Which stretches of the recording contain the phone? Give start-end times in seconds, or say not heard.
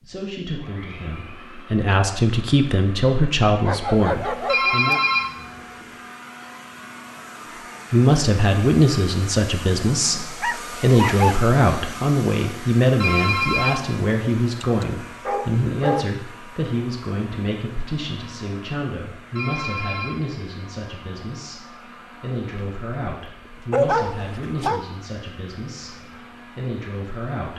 4.5-5.8, 13.0-13.9, 19.4-20.2.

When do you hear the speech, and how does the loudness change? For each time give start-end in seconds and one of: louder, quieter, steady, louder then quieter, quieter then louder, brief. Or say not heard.
0.0-5.0 louder
7.9-27.5 quieter.